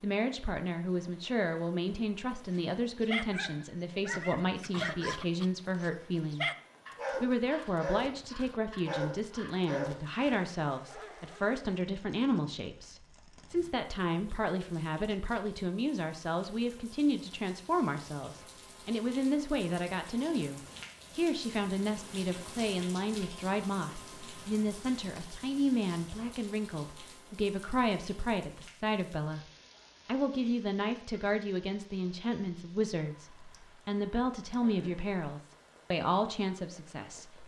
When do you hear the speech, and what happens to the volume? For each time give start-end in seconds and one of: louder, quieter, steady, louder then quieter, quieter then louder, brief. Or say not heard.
0.0-6.5 steady
7.2-29.4 steady
30.1-37.4 steady.